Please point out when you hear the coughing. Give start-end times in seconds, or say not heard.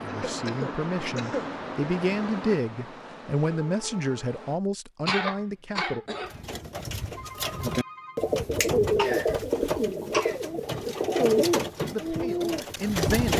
0.1-1.5, 5.0-6.3, 8.9-10.3.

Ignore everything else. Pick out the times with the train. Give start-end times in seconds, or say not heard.
0.0-4.6.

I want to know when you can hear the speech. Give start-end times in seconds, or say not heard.
0.0-6.0, 11.9-13.3.